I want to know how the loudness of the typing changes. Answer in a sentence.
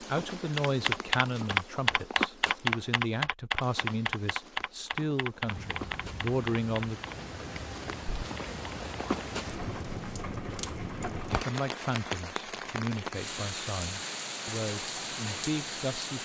The volume of the typing goes down.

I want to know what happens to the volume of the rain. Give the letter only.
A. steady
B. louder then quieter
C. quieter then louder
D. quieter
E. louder
E.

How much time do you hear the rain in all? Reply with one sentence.
The rain can be heard for 11 seconds in total.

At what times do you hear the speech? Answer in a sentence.
You can hear the speech from 0.0 to 7.0 s and from 11.4 to 16.2 s.